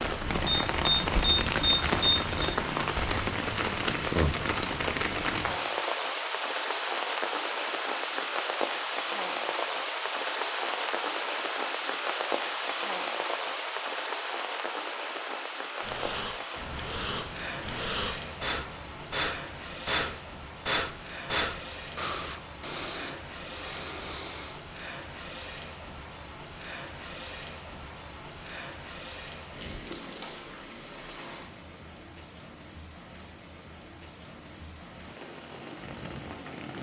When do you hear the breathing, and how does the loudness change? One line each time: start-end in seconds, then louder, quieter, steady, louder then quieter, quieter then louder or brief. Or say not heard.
15.8-24.6 louder.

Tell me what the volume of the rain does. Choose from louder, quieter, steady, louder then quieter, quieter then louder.
quieter.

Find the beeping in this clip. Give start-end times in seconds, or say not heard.
0.3-2.4.